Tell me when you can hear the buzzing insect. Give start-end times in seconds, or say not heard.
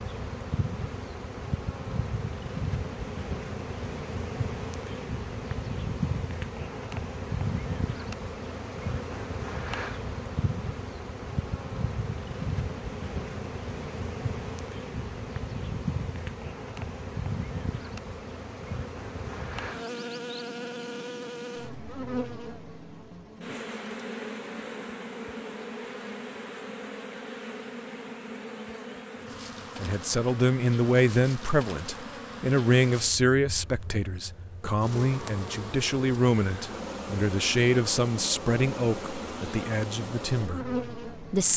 0.0-41.5.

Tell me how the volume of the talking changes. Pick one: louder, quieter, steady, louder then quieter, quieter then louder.
quieter.